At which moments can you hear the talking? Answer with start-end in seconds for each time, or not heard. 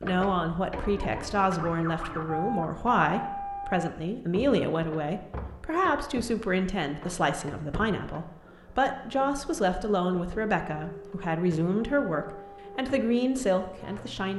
0.0-14.3.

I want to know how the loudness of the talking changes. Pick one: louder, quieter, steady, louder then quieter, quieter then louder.
steady.